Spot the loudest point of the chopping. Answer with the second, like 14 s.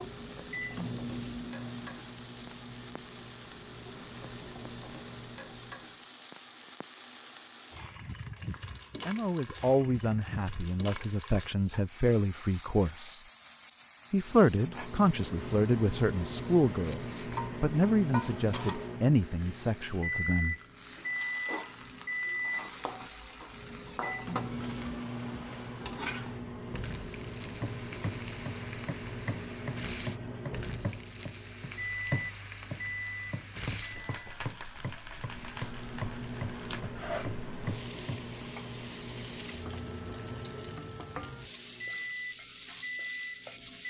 32 s.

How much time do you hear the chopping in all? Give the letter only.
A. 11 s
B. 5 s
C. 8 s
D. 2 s
A.